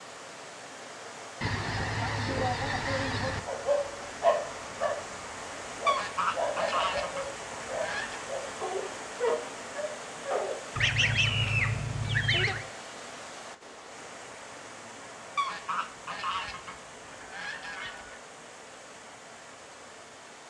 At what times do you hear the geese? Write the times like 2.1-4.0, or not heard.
1.4-3.4, 5.8-8.2, 10.8-12.7, 15.3-18.2.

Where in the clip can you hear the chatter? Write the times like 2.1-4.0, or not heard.
not heard.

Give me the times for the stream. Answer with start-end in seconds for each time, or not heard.
0.0-20.4.